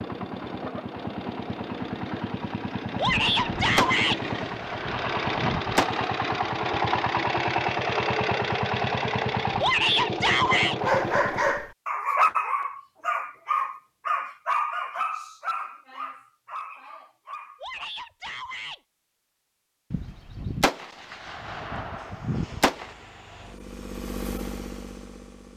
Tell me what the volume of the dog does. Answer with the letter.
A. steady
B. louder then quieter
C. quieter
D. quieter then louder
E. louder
C.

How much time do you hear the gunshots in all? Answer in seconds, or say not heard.
6 s.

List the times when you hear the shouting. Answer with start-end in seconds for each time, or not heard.
3.0-4.2, 9.6-10.8, 17.6-18.8.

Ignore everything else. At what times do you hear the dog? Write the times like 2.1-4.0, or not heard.
10.8-17.9.